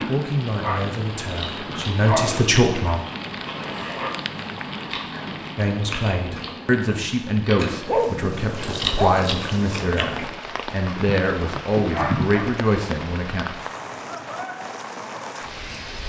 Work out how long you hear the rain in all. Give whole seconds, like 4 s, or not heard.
16 s.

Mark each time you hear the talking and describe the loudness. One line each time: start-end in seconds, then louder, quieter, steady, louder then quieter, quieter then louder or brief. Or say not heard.
0.1-3.0 brief
5.5-13.4 steady.